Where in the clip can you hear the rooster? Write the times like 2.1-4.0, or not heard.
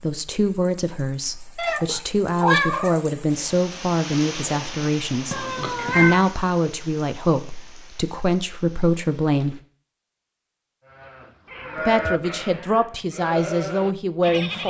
not heard.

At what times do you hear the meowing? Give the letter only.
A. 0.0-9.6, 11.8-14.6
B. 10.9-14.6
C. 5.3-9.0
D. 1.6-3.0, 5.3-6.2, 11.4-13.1
D.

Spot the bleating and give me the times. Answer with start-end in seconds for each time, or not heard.
10.9-14.6.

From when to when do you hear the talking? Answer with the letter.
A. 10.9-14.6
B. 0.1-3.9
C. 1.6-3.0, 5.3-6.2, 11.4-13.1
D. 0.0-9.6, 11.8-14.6
D.